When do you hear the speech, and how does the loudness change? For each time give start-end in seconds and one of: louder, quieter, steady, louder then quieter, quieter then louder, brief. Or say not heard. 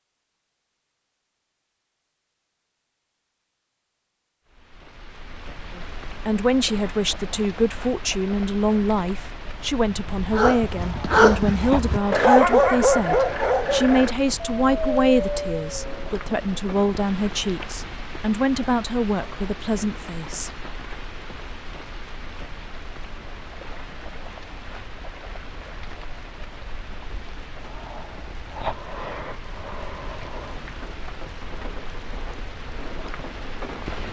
5.8-20.5 steady.